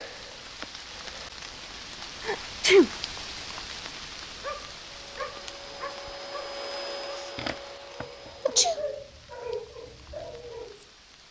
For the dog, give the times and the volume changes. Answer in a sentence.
You can hear the dog from 4.4 to 10.8 s, getting quieter then louder.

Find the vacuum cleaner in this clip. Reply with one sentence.
The vacuum cleaner can be heard from 4.9 to 8.6 s.